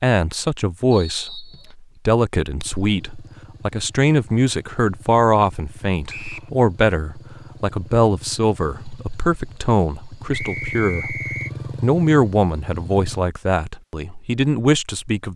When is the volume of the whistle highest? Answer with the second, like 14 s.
11 s.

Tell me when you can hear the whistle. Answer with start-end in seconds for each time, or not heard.
0.9-1.8, 6.0-6.5, 10.3-11.5.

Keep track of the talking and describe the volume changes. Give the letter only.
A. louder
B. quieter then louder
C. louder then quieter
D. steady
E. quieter
D.